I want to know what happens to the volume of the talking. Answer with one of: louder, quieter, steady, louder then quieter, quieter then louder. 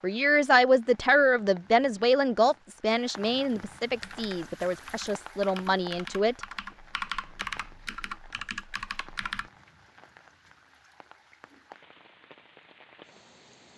quieter.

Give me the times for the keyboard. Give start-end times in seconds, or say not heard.
4.0-9.5.